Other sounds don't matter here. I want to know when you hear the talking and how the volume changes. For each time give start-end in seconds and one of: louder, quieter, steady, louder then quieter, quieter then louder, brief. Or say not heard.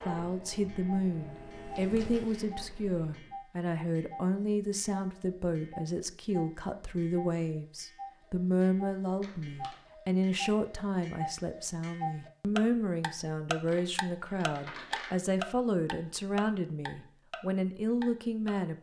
0.1-18.7 steady.